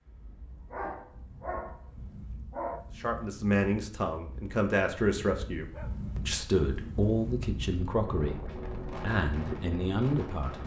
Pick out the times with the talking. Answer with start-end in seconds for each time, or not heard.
3.0-10.6.